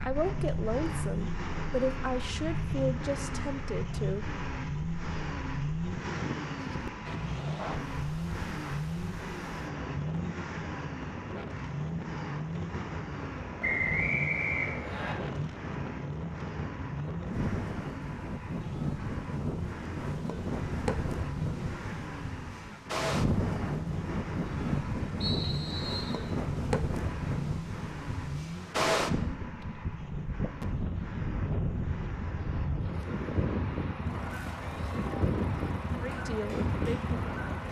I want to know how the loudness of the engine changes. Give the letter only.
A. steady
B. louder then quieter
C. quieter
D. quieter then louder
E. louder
C.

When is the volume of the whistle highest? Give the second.
14 s.